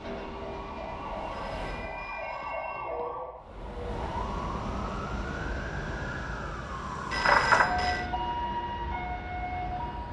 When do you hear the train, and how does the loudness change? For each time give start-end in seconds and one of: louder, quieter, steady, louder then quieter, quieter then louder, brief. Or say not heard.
0.0-2.2 brief
3.4-10.0 quieter.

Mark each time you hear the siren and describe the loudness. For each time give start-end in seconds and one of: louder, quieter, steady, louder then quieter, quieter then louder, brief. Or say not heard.
0.0-10.0 louder then quieter.